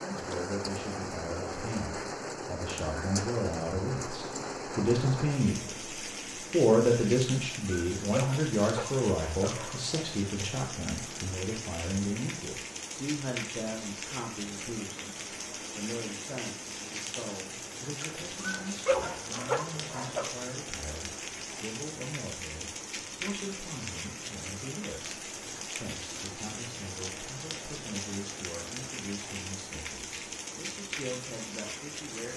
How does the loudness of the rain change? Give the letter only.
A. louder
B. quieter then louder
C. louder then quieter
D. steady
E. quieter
D.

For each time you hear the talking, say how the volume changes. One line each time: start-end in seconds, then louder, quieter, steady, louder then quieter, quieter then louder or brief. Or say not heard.
0.0-5.8 louder
6.5-32.3 quieter.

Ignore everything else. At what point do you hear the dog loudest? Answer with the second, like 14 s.
19 s.